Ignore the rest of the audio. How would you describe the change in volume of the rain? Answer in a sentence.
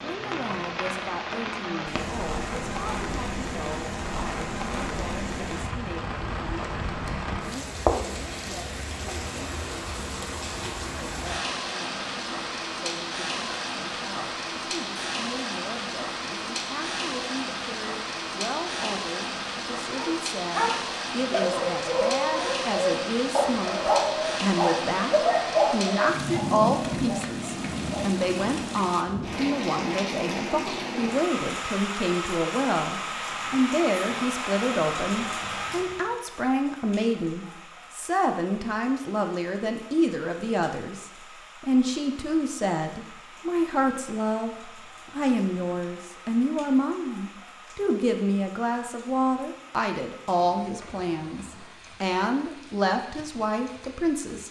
The volume of the rain goes down.